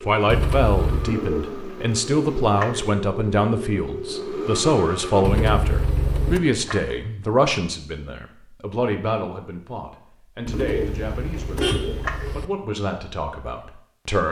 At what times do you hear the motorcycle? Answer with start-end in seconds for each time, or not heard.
0.0-5.2.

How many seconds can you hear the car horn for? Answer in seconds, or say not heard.
4 s.